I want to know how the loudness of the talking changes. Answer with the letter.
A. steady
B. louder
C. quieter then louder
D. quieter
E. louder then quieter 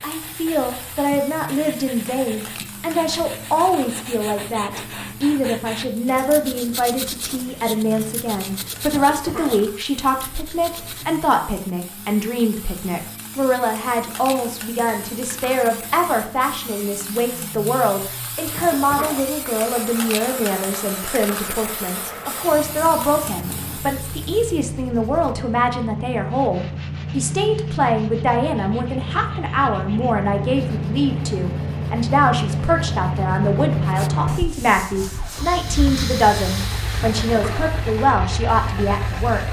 A.